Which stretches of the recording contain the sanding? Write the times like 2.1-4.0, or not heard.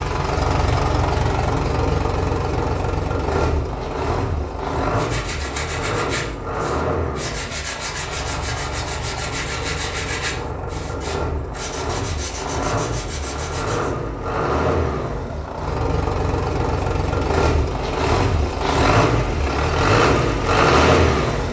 5.0-13.9.